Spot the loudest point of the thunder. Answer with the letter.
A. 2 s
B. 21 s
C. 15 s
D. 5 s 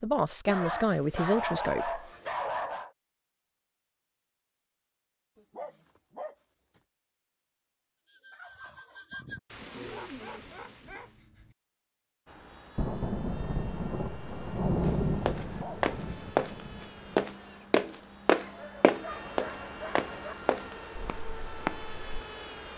C.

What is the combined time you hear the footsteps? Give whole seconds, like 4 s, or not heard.
7 s.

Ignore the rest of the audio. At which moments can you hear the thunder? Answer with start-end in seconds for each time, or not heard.
12.8-17.1.